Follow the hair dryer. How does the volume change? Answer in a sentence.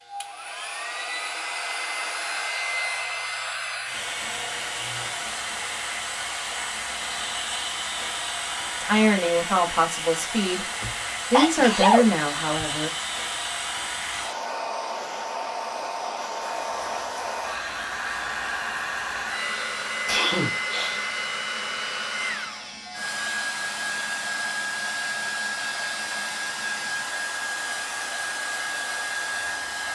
The loudness of the hair dryer stays about the same.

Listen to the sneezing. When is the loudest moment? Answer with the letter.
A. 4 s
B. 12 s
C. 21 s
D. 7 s
B.